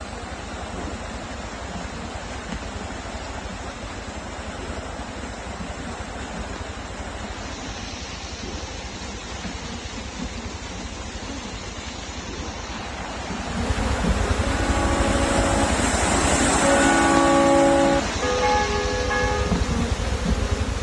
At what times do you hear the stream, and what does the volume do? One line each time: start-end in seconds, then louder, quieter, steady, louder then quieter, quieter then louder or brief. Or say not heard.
0.0-20.7 louder.